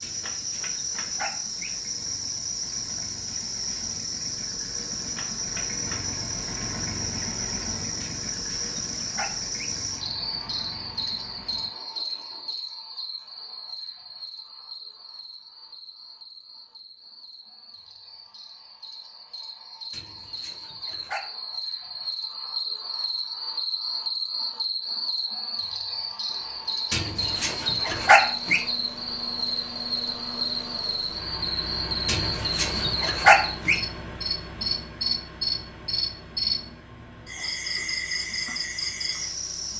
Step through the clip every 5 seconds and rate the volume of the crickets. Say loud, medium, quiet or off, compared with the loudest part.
loud, loud, medium, quiet, loud, loud, loud, loud.